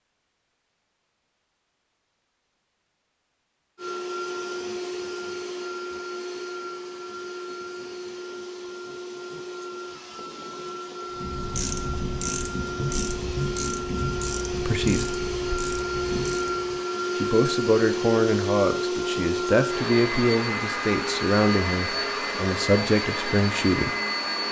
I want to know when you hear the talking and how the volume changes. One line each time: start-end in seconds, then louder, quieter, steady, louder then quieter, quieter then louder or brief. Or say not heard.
14.6-15.2 brief
17.1-23.9 steady.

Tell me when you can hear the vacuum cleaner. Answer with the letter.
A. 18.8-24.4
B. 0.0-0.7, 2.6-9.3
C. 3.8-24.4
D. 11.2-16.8
C.